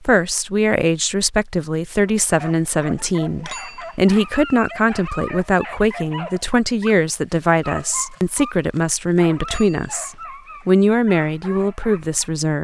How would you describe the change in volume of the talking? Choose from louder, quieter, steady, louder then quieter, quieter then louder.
steady.